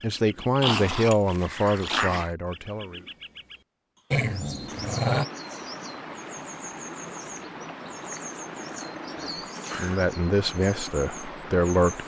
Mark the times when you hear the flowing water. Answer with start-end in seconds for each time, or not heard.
4.6-12.0.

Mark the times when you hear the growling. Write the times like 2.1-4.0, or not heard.
0.6-2.3, 4.1-5.2, 8.2-10.0.